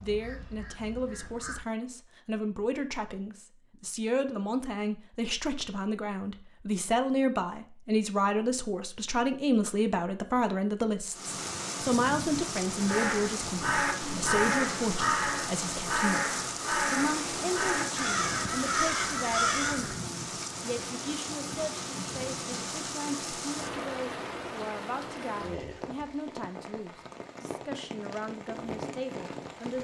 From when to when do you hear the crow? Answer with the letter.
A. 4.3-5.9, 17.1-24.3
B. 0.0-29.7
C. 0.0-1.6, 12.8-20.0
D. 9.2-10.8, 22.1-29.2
C.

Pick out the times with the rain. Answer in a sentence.
The rain can be heard from 11.1 to 29.7 s.